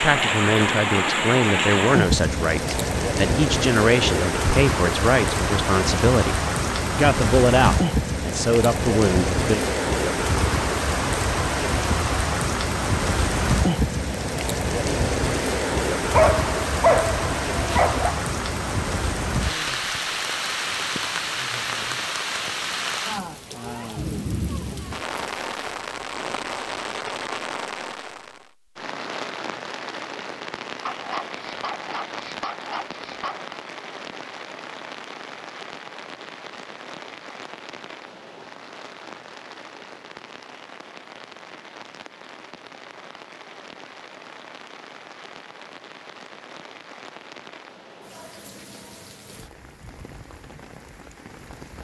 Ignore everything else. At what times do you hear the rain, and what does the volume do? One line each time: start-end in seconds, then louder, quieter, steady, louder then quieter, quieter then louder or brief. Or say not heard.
0.0-51.8 quieter.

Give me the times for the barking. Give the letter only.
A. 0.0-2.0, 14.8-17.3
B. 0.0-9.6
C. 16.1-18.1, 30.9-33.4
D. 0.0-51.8
C.